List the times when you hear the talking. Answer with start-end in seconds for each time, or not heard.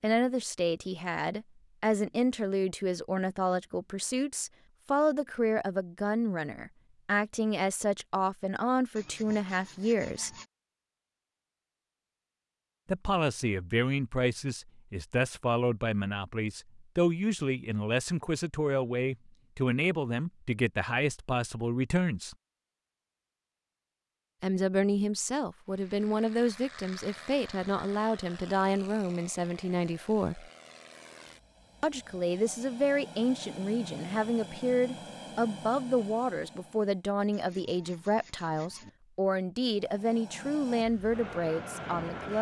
0.0-10.3, 12.8-22.4, 24.4-30.4, 31.8-42.3.